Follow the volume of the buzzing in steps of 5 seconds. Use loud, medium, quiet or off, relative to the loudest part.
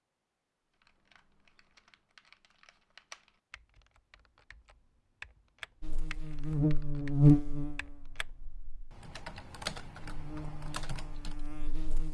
off, loud, quiet.